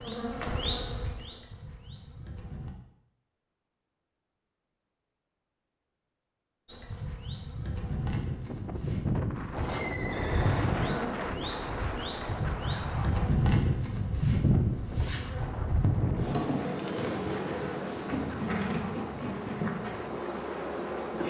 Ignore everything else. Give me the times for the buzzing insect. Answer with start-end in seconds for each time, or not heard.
0.0-2.7, 6.7-21.2.